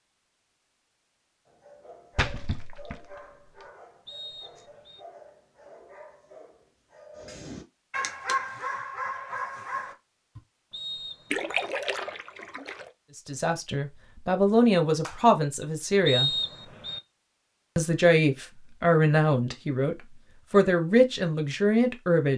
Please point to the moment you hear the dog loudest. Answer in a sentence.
The volume of the dog peaks at 8 seconds.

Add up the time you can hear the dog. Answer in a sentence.
You can hear the dog for 9 seconds altogether.